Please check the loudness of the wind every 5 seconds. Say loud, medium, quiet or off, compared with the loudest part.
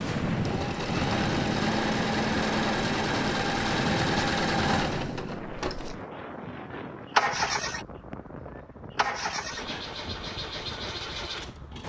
loud, medium, quiet.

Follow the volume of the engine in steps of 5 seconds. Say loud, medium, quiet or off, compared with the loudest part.
loud, loud, medium.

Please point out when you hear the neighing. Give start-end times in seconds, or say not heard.
not heard.